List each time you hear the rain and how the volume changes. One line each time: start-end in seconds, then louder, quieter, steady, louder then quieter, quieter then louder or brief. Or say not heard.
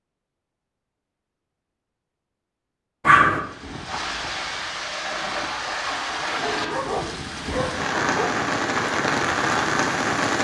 3.2-10.3 louder.